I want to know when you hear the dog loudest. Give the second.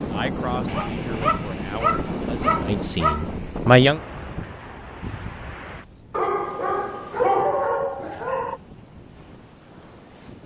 7 s.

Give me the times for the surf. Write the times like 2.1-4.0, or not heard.
0.0-10.4.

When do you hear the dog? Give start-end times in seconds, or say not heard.
0.7-3.6, 6.1-8.6.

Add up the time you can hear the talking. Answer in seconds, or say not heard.
4 s.